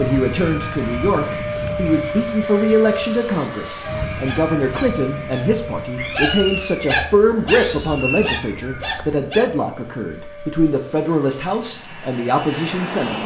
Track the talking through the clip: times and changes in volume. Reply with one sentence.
The talking can be heard from 0.0 to 13.2 s, at a steady volume.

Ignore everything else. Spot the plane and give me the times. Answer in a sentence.
The plane can be heard from 0.0 to 13.2 s.